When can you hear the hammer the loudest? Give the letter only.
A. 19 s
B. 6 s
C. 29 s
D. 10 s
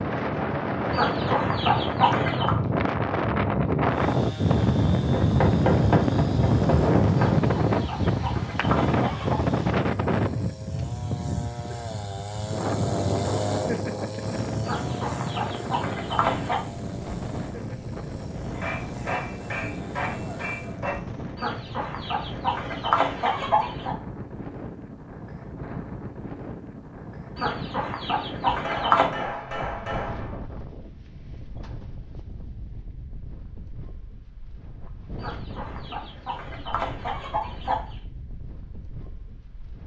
B.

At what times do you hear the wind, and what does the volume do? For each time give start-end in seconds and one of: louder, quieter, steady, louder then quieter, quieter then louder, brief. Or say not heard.
0.0-39.8 quieter.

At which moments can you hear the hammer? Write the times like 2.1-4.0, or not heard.
5.1-7.3, 18.5-20.9, 28.4-30.4.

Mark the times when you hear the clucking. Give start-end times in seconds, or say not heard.
0.9-2.5, 7.3-9.4, 14.6-16.6, 21.4-23.9, 27.4-29.1, 35.1-38.0.